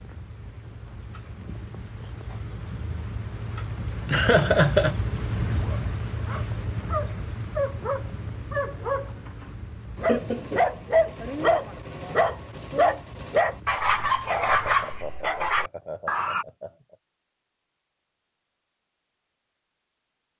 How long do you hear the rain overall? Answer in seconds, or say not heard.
15 s.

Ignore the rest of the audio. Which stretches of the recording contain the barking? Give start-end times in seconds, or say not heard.
5.6-16.4.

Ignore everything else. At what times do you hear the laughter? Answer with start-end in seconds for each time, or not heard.
4.0-5.0, 10.1-10.7, 14.2-16.9.